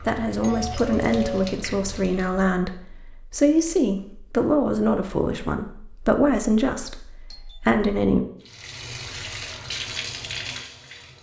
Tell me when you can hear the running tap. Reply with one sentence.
The running tap can be heard from 0.0 to 2.5 s and from 8.4 to 11.1 s.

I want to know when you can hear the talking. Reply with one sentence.
You can hear the talking from 0.0 to 8.2 s.